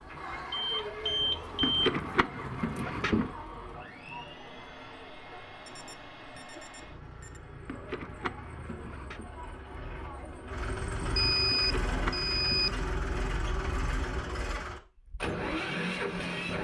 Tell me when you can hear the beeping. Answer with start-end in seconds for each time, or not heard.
0.5-1.9, 5.7-7.4, 11.2-12.7.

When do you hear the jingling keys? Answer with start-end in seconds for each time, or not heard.
1.6-3.3, 7.7-9.3, 11.5-12.9.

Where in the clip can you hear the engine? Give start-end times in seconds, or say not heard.
0.0-16.6.